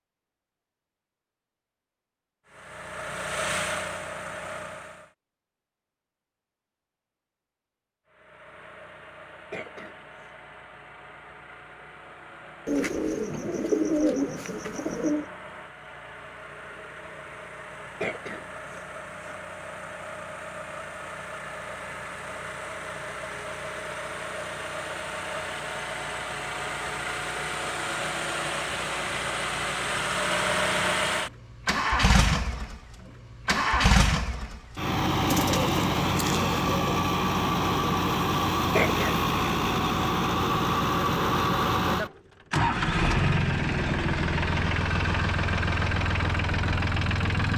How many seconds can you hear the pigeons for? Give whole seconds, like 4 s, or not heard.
4 s.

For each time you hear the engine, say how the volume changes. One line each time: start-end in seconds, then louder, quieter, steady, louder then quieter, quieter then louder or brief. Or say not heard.
2.5-5.1 brief
8.1-47.5 louder.